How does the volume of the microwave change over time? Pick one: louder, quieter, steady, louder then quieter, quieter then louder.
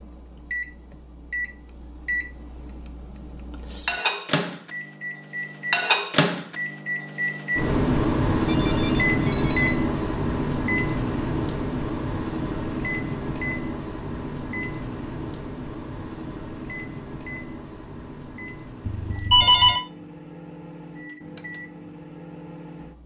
louder then quieter.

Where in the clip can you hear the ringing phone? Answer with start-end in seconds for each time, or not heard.
8.4-9.8, 18.9-19.9.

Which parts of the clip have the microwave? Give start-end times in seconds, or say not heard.
0.0-23.0.